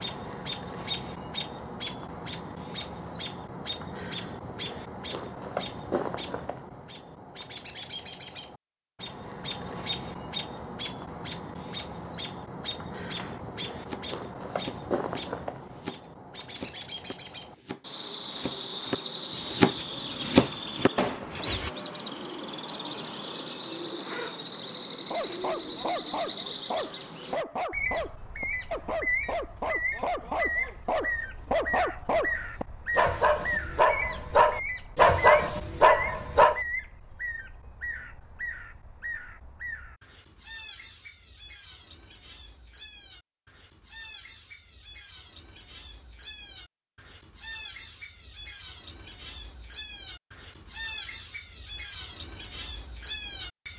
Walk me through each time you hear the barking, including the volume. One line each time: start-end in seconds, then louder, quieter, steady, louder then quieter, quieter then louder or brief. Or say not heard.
25.1-36.6 louder.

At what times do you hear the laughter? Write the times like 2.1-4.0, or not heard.
not heard.